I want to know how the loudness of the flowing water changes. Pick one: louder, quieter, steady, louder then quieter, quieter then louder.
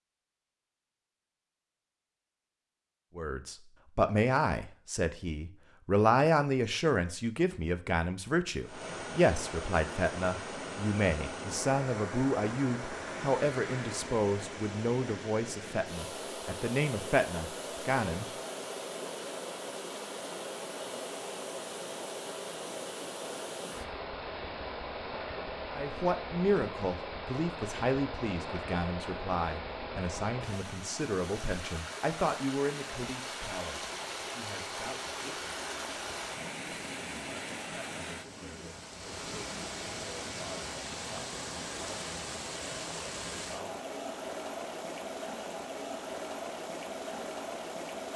steady.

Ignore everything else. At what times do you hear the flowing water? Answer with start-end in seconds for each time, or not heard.
8.6-48.1.